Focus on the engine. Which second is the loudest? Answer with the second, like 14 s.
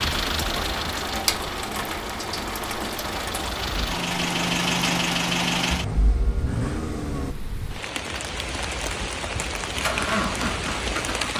5 s.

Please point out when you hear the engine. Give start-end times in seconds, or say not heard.
0.0-7.3, 9.7-11.3.